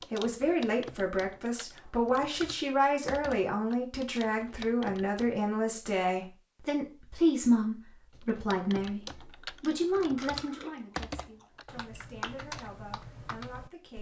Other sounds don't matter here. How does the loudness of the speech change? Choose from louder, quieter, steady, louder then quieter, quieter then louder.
quieter.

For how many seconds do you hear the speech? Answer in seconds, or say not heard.
14 s.